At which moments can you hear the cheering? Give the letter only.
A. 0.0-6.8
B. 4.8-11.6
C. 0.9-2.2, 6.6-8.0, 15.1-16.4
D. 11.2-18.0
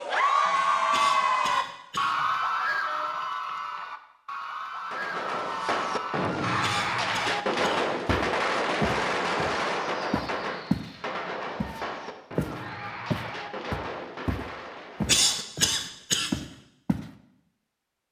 A.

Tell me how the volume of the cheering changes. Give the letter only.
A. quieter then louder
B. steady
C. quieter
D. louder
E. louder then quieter
C.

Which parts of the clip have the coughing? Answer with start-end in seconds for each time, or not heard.
0.9-2.2, 6.6-8.0, 15.1-16.4.